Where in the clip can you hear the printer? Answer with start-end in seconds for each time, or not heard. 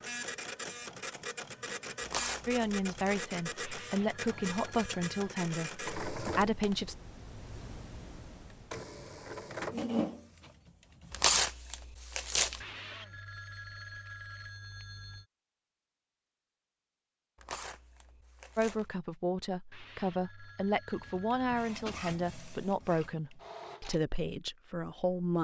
0.0-11.4, 20.9-24.0.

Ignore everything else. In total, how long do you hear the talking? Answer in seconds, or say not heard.
11 s.